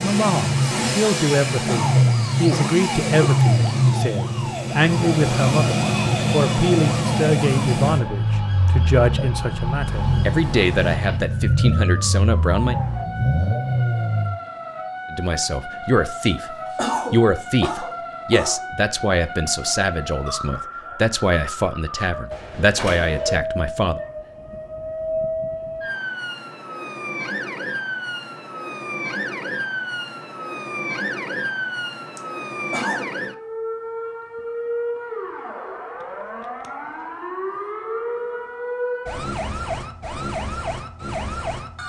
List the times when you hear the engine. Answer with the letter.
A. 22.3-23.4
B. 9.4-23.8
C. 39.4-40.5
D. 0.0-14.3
D.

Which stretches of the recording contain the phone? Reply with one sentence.
The phone can be heard from 22.3 to 23.4 s.